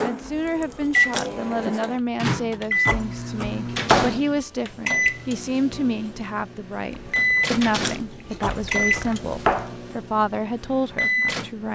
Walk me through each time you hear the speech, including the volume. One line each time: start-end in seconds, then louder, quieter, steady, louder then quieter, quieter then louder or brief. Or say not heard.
0.0-11.6 steady.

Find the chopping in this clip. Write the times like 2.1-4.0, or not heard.
2.9-4.2, 8.4-9.8.